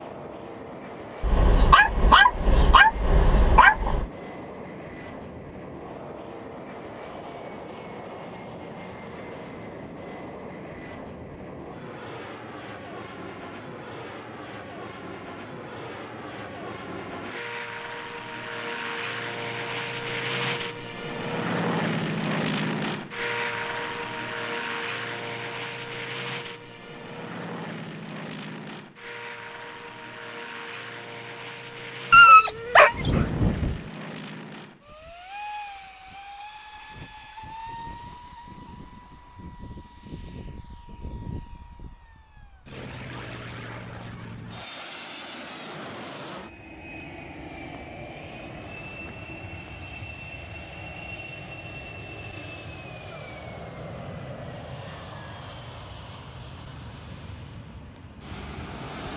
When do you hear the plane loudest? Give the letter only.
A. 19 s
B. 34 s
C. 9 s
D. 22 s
D.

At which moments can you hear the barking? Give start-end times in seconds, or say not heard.
1.2-4.0, 32.1-33.8.